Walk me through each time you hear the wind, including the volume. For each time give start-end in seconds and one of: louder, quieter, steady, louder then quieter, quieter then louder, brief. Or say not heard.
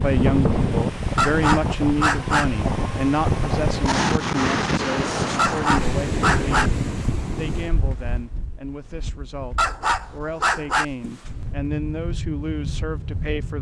0.0-13.2 quieter.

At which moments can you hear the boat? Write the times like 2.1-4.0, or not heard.
11.2-13.5.